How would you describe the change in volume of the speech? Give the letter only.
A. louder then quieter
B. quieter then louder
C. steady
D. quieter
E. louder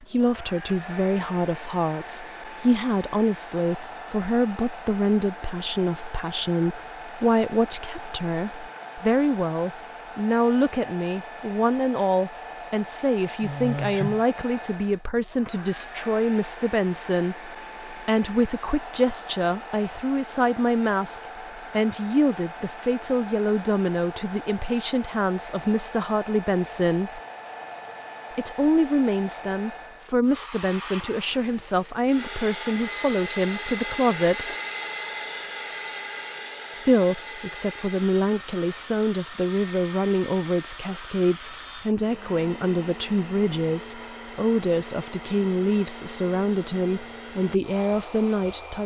C.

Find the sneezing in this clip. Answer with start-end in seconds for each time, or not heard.
13.4-14.2.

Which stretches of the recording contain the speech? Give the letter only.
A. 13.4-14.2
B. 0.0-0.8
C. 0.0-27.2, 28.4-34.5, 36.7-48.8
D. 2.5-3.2
C.